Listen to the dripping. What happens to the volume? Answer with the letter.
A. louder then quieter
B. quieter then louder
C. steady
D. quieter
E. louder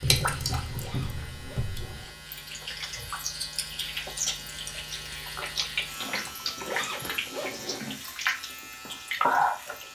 E.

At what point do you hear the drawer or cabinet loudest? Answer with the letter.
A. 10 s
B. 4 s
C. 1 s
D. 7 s
C.